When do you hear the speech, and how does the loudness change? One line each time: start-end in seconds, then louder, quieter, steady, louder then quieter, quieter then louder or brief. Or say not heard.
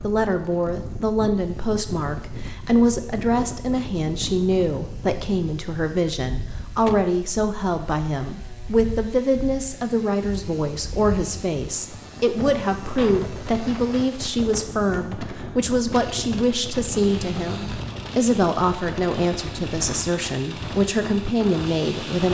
0.0-22.2 steady.